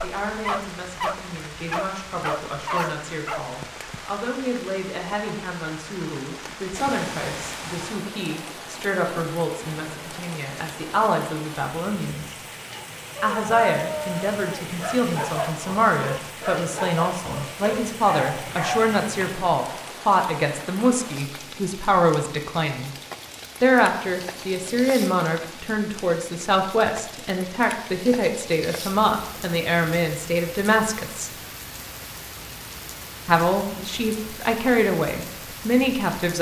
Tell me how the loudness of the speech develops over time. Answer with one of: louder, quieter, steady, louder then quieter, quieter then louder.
louder.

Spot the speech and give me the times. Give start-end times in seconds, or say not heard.
0.0-12.3, 13.2-22.9, 23.6-31.3, 33.2-36.3.